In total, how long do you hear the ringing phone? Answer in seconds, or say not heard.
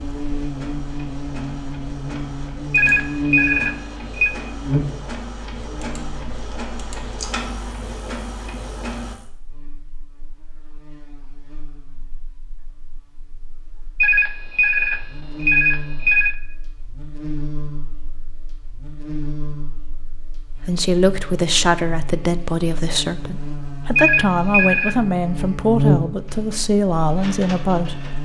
5 s.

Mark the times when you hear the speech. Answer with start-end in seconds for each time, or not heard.
20.5-28.1.